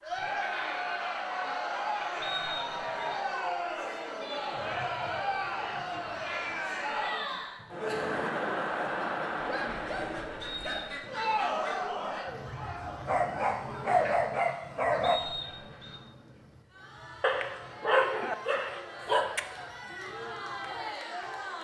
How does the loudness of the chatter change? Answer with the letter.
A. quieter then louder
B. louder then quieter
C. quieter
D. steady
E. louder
C.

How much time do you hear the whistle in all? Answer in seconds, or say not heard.
3 s.